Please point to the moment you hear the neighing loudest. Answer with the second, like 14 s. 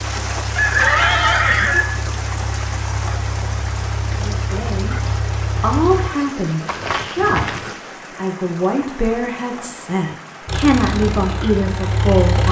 1 s.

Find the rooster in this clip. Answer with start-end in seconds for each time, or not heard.
0.6-1.9.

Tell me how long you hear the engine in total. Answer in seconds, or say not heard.
8 s.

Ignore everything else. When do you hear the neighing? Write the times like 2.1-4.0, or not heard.
0.7-1.8, 6.7-7.8.